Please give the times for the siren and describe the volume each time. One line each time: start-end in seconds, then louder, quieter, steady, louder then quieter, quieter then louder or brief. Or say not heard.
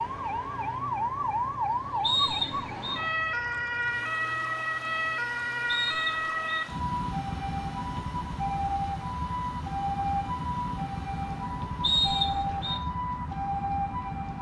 0.0-14.3 steady.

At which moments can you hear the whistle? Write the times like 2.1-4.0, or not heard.
2.0-3.0, 5.7-6.7, 11.8-12.8.